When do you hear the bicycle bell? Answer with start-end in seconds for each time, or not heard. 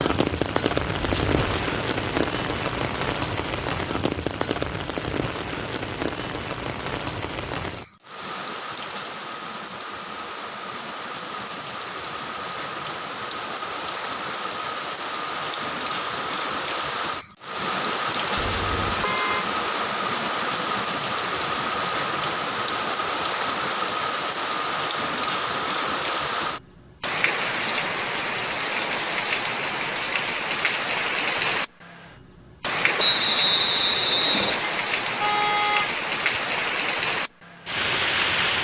not heard.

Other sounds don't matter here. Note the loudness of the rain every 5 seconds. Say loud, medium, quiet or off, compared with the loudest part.
loud, medium, medium, loud, loud, loud, loud, loud.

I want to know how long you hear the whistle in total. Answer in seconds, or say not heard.
2 s.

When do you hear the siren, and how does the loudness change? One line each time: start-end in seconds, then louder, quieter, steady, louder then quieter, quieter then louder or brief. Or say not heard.
not heard.